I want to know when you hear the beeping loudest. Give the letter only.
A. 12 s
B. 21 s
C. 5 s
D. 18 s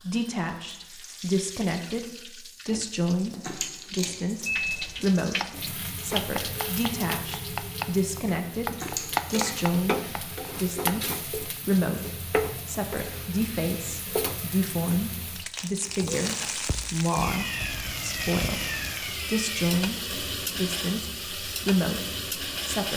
C.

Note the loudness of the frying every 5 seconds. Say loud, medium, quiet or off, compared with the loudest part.
medium, loud, loud, loud, loud.